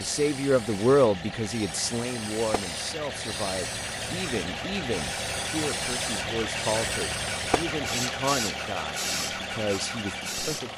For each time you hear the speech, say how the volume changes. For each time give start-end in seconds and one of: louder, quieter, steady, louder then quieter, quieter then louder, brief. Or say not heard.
0.0-10.7 quieter.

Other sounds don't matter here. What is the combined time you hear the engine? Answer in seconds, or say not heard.
11 s.